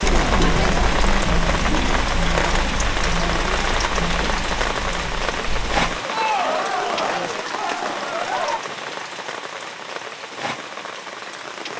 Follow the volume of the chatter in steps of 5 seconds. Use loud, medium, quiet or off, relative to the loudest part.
loud, loud, off.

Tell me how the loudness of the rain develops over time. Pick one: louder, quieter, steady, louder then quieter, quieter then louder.
quieter.